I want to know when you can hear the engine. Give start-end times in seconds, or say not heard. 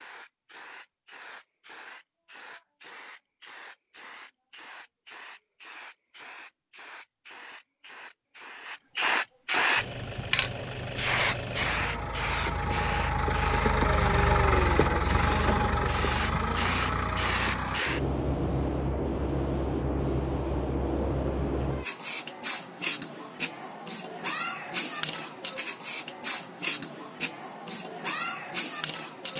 9.8-17.8.